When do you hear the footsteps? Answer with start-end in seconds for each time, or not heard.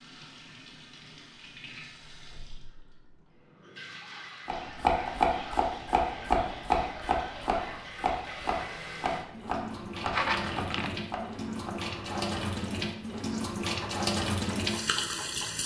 not heard.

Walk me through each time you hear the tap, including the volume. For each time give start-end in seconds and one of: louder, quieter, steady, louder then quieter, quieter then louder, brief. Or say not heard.
0.0-15.6 louder.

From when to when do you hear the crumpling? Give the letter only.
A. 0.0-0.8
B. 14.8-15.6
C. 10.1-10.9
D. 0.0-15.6
C.